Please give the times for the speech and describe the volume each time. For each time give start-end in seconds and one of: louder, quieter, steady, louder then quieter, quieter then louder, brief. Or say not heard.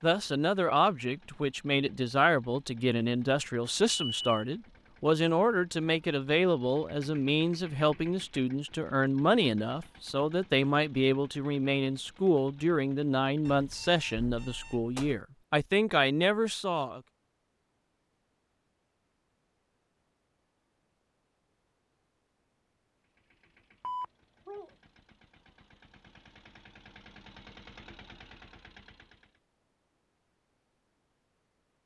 0.0-17.0 steady.